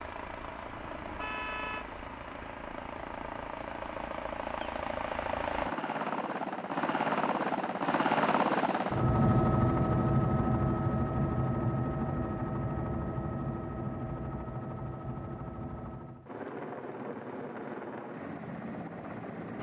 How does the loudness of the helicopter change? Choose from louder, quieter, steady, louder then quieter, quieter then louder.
louder then quieter.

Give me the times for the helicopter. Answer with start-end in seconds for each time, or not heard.
0.0-19.5.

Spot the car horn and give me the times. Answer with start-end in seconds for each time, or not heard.
0.8-1.9.